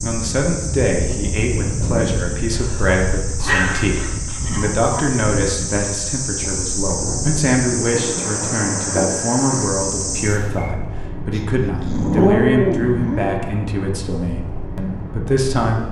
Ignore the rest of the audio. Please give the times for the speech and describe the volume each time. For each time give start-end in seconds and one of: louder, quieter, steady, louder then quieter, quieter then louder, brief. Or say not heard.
0.0-15.8 steady.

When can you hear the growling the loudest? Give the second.
12 s.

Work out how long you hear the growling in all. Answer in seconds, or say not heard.
4 s.